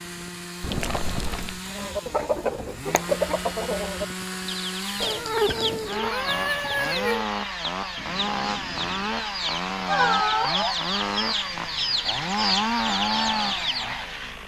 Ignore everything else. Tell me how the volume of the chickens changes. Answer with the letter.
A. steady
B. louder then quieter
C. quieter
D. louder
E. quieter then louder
E.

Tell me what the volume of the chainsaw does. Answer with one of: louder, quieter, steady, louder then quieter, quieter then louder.
louder.